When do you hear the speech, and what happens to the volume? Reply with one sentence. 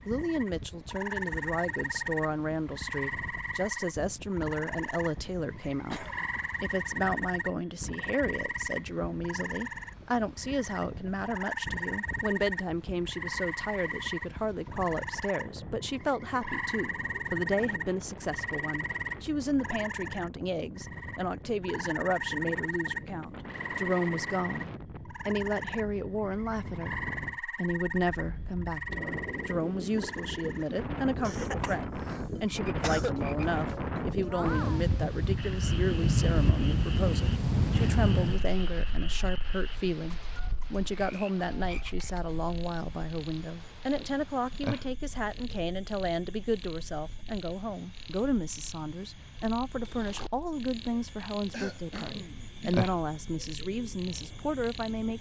You can hear the speech from 0.1 to 55.1 s, at a steady volume.